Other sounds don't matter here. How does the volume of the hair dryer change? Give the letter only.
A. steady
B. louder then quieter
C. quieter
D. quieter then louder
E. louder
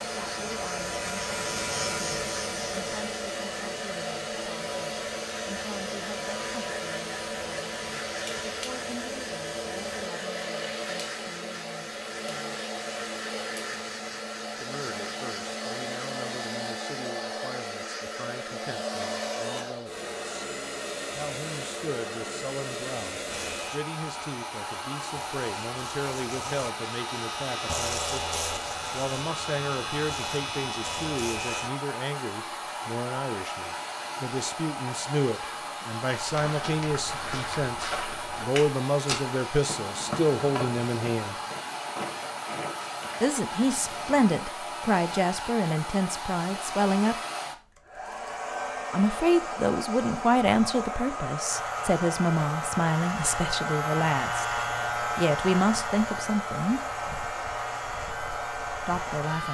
A.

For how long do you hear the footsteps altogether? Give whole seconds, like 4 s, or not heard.
8 s.